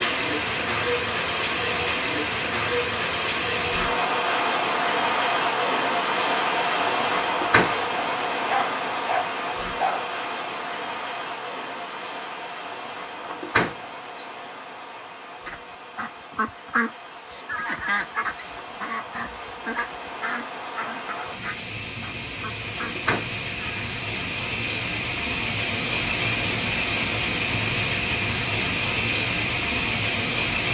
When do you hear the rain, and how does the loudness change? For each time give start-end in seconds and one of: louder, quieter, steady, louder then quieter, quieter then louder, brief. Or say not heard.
0.0-30.7 quieter then louder.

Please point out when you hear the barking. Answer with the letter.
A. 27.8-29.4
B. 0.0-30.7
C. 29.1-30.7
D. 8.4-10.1
D.